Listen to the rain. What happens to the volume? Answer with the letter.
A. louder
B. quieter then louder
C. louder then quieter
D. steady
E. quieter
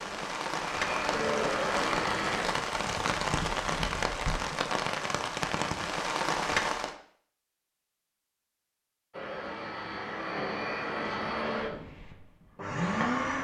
D.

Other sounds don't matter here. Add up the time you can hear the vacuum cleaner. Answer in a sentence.
You can hear the vacuum cleaner for 7 seconds altogether.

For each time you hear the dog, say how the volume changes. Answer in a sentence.
You can't hear the dog here.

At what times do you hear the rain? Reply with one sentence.
The rain can be heard from 0.0 to 7.0 s.